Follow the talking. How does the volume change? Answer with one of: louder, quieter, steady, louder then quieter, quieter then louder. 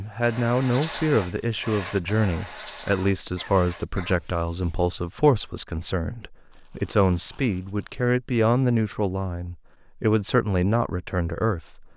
steady.